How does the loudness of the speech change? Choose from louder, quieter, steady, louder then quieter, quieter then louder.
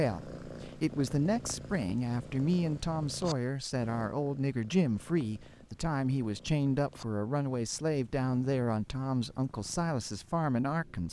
steady.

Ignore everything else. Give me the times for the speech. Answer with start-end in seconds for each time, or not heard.
0.0-11.0.